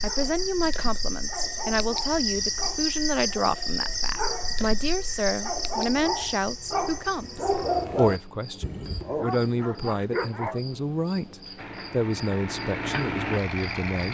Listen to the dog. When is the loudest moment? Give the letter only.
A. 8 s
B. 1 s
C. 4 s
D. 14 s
A.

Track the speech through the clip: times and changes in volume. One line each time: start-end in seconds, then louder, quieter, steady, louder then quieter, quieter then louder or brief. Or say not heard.
0.0-14.0 steady.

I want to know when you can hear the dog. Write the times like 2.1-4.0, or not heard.
0.0-10.6.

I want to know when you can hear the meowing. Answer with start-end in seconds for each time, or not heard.
not heard.